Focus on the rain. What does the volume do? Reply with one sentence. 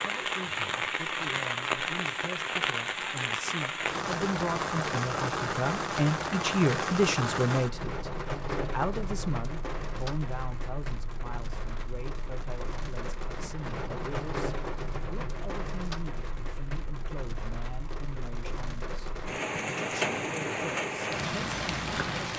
The volume of the rain goes down, then up.